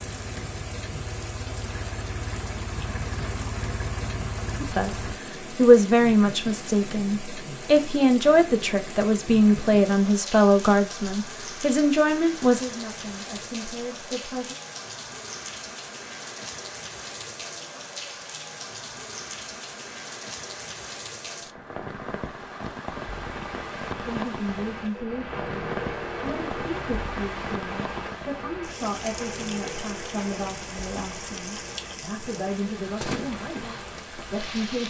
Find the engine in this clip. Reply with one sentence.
You can hear the engine from 0.0 to 5.2 s and from 22.9 to 34.8 s.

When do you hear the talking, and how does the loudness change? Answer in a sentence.
You can hear the talking from 4.6 to 14.6 s, getting quieter; briefly from 24.1 to 25.5 s; and from 26.2 to 34.8 s, at a steady volume.